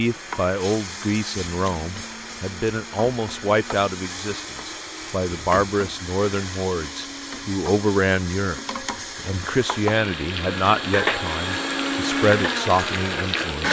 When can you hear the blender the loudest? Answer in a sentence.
The volume of the blender peaks at 12 seconds.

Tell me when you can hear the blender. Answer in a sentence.
The blender can be heard from 0.0 to 13.6 s.